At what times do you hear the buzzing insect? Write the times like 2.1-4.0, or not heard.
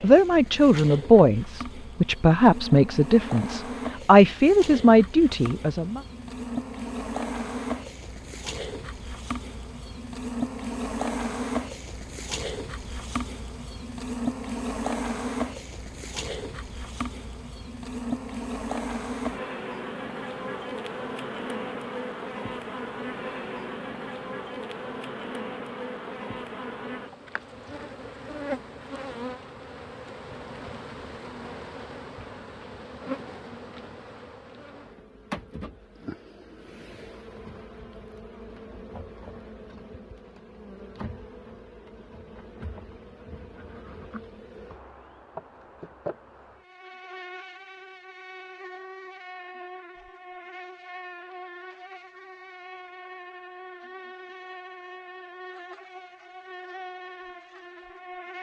0.0-58.3.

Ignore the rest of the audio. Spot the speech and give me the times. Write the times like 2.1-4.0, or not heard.
0.0-6.0.